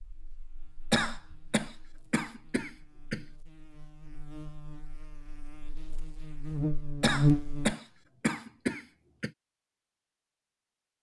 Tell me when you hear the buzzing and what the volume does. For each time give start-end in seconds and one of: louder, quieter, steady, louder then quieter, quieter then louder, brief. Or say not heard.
0.0-7.8 louder.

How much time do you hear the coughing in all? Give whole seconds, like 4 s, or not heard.
5 s.